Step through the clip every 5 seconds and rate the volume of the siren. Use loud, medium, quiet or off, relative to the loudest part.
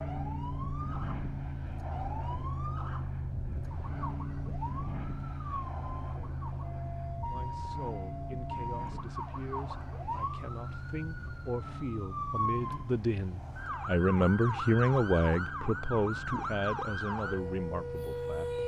medium, medium, loud, loud.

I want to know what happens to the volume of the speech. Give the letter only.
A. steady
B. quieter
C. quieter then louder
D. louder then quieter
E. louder
D.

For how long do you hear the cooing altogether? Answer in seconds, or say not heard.
not heard.